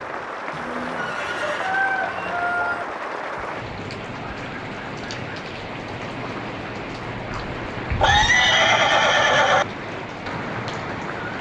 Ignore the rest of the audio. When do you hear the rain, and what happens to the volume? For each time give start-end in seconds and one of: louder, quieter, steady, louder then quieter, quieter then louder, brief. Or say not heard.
0.0-11.3 steady.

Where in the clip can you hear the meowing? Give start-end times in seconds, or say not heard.
not heard.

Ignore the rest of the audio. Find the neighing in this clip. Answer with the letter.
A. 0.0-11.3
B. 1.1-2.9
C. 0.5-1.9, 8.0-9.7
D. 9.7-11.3
C.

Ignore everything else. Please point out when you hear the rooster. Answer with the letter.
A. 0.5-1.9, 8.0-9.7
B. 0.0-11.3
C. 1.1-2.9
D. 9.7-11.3
C.